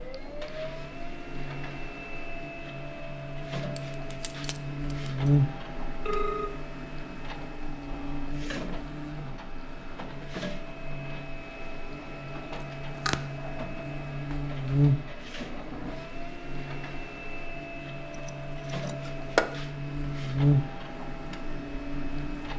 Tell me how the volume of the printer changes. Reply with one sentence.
The loudness of the printer stays about the same.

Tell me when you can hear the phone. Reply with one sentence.
You can hear the phone from 6.0 to 6.5 s.